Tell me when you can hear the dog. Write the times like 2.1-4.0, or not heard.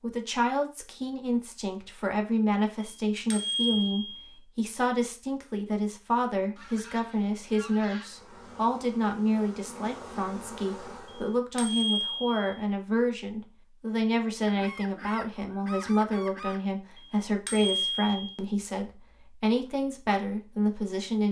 not heard.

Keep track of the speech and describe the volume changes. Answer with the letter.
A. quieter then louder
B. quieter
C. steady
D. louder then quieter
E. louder
C.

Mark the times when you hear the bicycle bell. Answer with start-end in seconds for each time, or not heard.
2.8-4.3, 11.1-12.6, 16.9-18.4.